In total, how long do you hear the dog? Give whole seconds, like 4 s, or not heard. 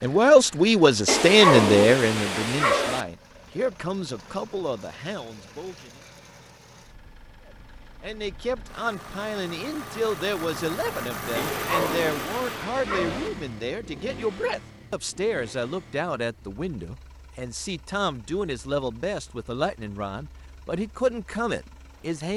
4 s.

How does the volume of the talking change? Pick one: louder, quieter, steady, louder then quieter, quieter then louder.
quieter.